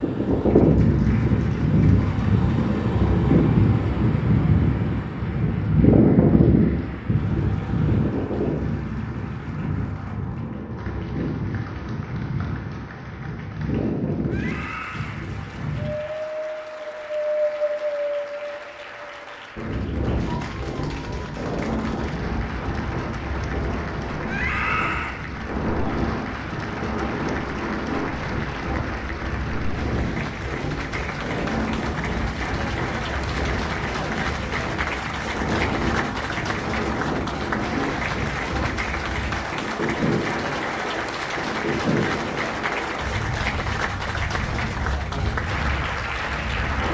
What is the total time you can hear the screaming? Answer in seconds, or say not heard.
2 s.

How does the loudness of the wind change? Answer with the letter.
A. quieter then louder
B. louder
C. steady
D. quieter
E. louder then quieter
D.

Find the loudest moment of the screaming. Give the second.
25 s.